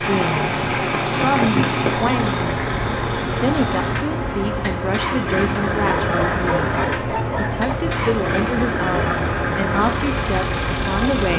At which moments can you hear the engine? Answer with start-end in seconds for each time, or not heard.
0.0-11.3.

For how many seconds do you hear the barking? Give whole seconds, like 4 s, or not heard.
2 s.